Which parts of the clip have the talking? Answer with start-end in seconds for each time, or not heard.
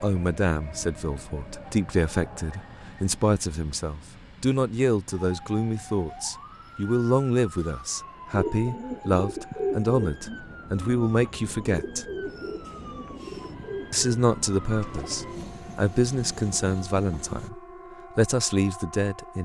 0.0-12.1, 13.9-19.4.